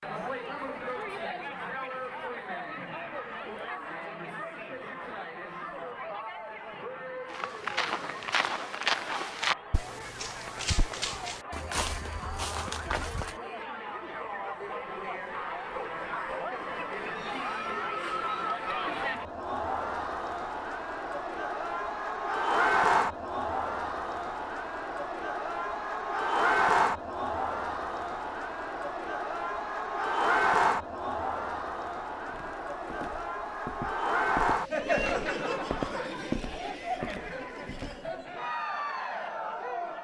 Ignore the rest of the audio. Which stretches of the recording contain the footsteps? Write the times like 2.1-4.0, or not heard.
7.3-13.4, 32.2-38.1.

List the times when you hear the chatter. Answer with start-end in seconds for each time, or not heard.
0.0-39.9.